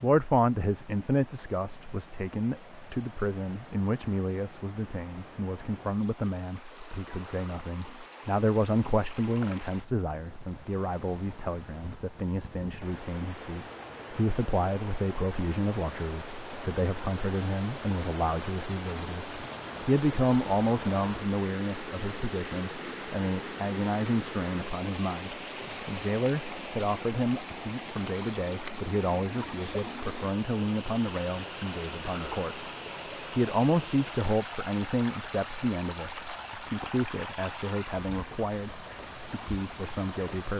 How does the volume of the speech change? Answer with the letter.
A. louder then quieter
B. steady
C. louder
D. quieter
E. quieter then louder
B.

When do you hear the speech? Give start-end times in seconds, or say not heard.
0.0-32.6, 33.3-40.5.